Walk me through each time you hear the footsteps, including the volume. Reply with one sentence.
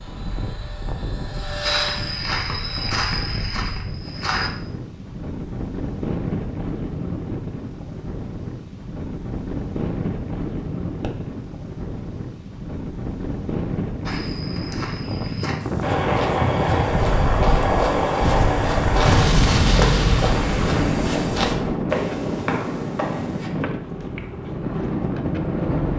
The footsteps can be heard briefly from 1.6 to 4.5 s; and from 14.1 to 23.5 s, getting louder.